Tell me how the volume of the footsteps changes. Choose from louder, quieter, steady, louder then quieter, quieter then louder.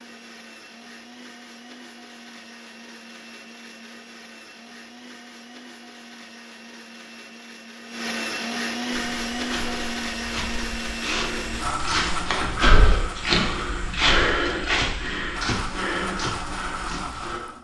louder then quieter.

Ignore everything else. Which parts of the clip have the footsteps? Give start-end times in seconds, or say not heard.
8.9-17.4.